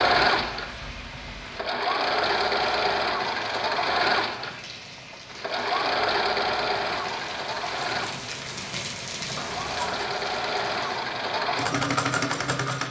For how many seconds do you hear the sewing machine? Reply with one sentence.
The sewing machine can be heard for 13 seconds in total.